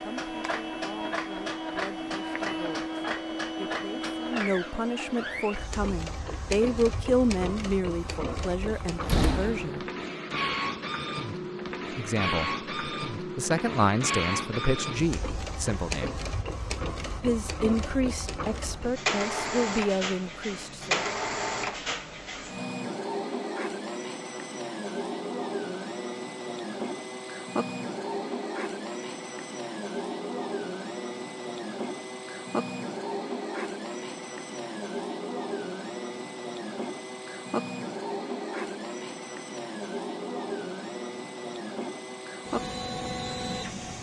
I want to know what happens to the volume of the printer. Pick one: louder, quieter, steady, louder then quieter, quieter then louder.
steady.